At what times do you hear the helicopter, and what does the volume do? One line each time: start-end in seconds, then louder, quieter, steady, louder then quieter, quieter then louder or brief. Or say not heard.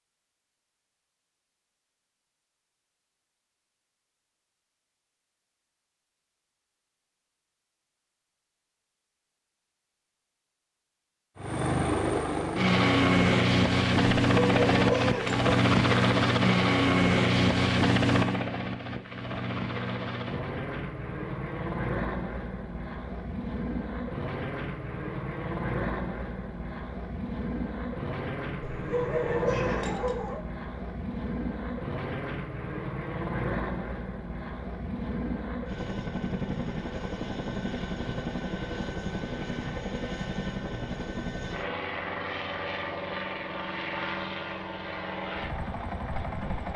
11.3-46.7 quieter.